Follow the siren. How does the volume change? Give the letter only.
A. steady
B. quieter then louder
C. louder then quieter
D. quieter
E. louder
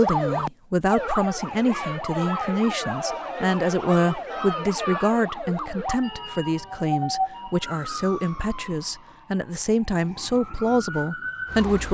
D.